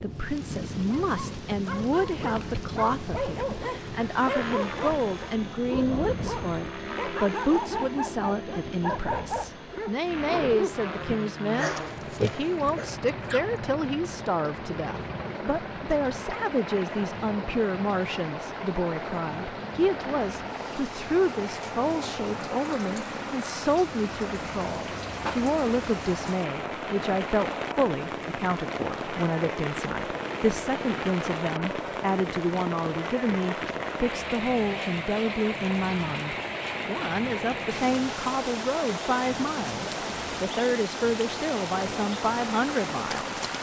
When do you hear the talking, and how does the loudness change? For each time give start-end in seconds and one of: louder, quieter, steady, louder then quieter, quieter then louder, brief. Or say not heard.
0.0-43.5 steady.